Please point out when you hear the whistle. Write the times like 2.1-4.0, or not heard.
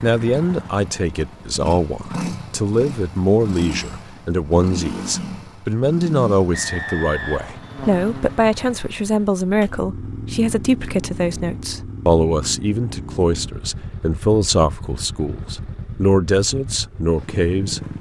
6.5-7.6.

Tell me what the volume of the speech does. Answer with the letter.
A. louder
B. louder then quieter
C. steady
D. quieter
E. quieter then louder
C.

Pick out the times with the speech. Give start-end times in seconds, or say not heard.
0.0-17.8.